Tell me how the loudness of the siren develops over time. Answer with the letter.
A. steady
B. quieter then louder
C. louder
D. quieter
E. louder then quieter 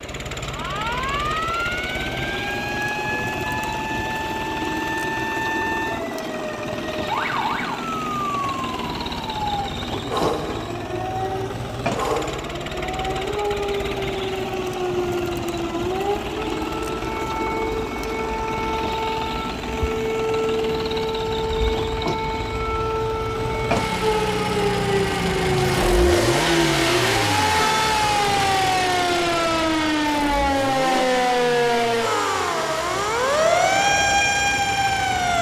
C.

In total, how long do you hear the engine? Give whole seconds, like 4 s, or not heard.
35 s.